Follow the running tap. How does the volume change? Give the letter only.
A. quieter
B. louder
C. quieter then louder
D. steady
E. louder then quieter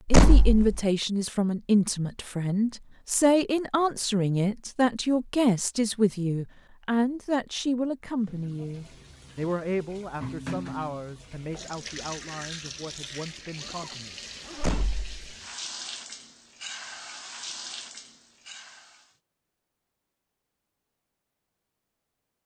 D.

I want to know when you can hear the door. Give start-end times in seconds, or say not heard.
0.1-0.8, 14.6-15.2.